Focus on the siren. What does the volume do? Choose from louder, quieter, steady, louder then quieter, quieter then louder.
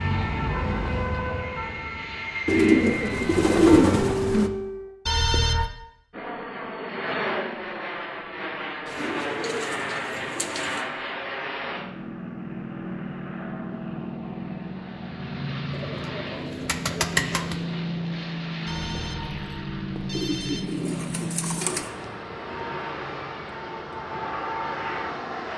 quieter then louder.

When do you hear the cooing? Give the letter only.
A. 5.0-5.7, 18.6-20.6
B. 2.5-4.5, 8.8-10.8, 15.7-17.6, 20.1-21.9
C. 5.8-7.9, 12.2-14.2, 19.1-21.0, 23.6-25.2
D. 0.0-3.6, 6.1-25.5
B.